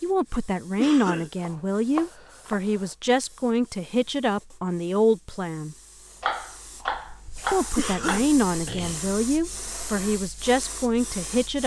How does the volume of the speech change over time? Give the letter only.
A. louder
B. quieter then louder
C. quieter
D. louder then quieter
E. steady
E.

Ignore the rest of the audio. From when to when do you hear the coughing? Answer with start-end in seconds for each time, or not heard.
0.8-1.3, 7.8-9.2.